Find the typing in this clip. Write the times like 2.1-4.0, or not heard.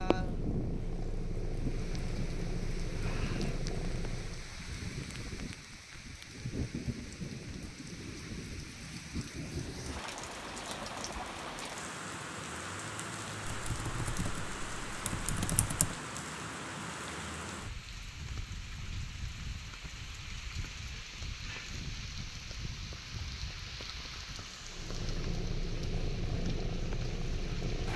13.4-15.9.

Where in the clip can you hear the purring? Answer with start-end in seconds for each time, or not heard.
0.0-4.6, 24.6-27.9.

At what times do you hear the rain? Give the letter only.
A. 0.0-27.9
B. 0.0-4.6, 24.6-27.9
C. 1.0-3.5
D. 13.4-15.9
A.